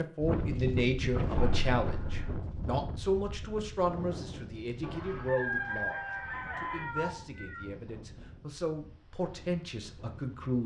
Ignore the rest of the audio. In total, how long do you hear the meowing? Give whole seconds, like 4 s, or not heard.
2 s.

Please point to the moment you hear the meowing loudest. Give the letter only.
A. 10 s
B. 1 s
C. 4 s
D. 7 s
D.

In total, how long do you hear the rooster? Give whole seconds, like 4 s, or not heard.
2 s.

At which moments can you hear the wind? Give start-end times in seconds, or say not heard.
0.0-10.6.